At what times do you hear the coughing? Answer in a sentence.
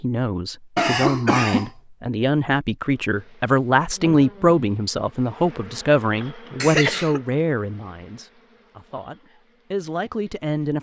You can hear the coughing from 0.8 to 1.7 s and from 6.6 to 7.2 s.